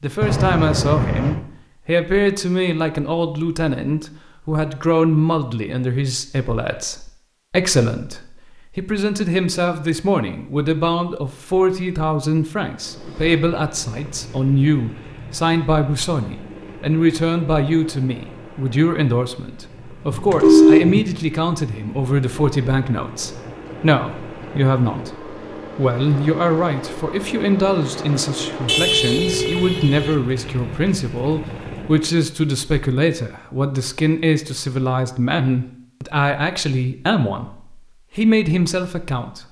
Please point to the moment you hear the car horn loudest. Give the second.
21 s.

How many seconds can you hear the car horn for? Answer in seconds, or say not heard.
4 s.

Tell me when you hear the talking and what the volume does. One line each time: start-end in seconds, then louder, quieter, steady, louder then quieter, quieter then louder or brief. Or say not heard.
0.0-39.4 steady.